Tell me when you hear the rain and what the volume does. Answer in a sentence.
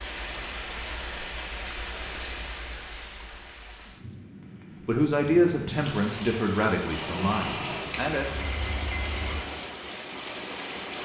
You can hear the rain from 0.0 to 11.0 s, getting quieter then louder.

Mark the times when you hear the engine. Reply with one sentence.
You can hear the engine from 6.9 to 9.4 s.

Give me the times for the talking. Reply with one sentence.
You can hear the talking from 4.8 to 8.2 s.